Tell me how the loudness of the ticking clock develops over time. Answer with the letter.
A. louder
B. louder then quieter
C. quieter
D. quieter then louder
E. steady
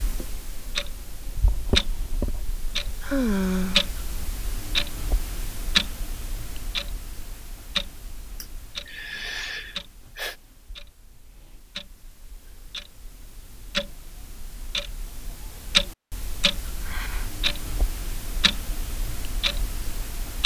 D.